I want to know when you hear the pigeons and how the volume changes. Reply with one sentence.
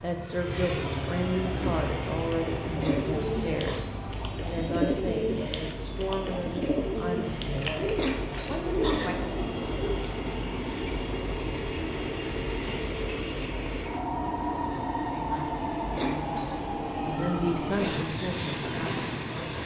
You can hear the pigeons from 1.2 to 10.2 s, at a steady volume.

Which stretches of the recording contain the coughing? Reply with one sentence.
The coughing can be heard from 2.8 to 3.8 s, from 8.0 to 9.1 s and from 15.9 to 16.7 s.